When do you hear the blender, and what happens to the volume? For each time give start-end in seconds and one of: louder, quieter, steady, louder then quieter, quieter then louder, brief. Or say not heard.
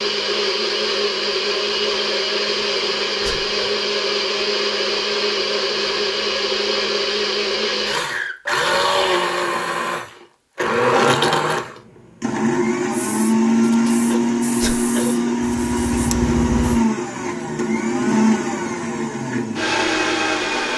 0.0-20.7 steady.